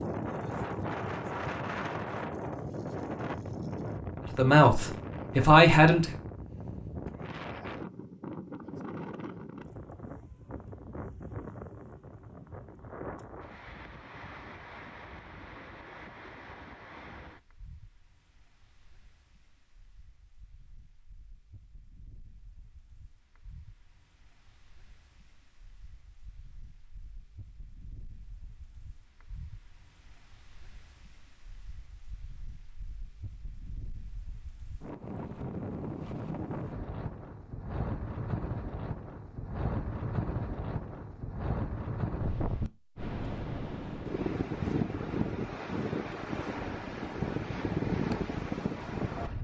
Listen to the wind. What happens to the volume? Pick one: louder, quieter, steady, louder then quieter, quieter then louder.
quieter then louder.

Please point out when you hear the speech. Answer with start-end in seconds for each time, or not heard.
4.3-6.2.